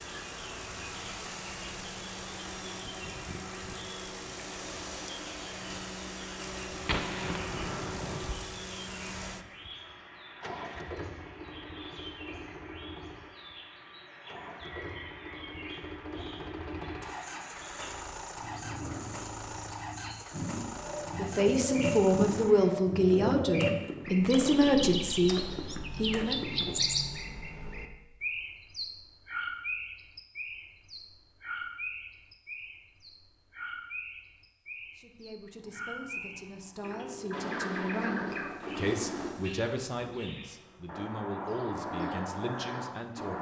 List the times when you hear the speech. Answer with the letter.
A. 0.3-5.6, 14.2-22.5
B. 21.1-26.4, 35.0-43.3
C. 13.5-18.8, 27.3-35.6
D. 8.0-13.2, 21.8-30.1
B.